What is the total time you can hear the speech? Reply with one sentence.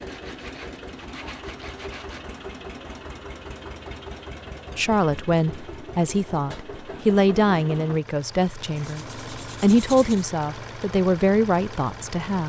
You can hear the speech for 8 seconds altogether.